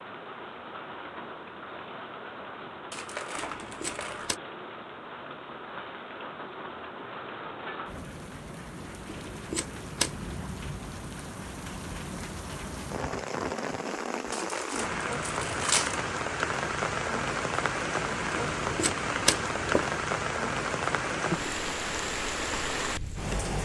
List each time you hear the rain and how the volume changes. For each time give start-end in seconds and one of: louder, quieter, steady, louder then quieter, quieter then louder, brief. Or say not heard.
0.0-23.6 louder.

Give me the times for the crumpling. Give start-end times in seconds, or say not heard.
2.9-4.3, 14.3-16.1.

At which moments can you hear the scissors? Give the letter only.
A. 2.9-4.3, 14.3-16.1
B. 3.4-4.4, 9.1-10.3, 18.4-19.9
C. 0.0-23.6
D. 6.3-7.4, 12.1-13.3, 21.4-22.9
B.